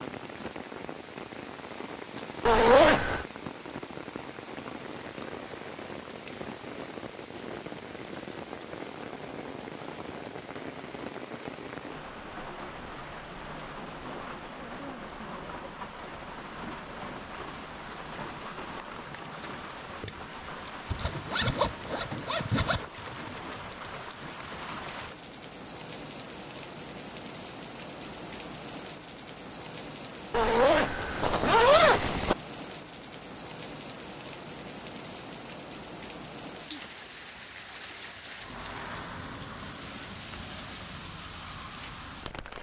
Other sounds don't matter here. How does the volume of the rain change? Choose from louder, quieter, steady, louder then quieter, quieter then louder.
steady.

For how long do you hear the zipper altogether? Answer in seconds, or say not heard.
5 s.